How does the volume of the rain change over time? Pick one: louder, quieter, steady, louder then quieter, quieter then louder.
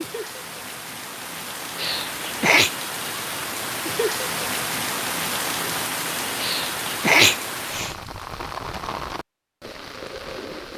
louder then quieter.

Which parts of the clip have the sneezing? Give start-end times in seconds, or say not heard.
1.8-2.7, 6.4-8.0.